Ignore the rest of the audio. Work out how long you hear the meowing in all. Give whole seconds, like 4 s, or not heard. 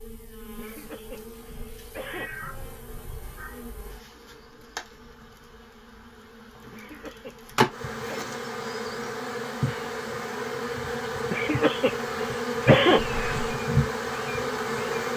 2 s.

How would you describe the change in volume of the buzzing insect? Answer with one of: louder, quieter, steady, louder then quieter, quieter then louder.
louder.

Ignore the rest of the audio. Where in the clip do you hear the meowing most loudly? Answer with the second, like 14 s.
13 s.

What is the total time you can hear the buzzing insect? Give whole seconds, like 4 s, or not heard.
15 s.